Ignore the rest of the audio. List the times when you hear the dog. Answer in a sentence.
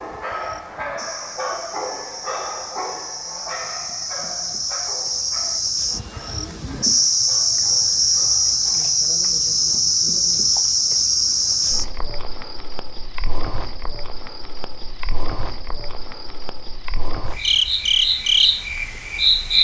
The dog can be heard from 0.0 to 8.8 s.